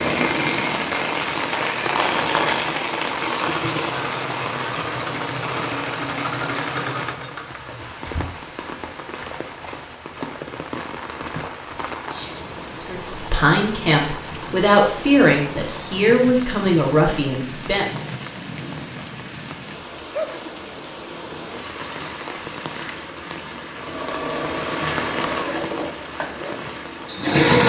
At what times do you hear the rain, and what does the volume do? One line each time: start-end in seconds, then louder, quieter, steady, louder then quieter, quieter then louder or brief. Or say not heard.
0.0-27.4 quieter.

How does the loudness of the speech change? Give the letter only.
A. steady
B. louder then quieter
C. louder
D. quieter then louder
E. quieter
A.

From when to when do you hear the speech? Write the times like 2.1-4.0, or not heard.
12.8-17.9.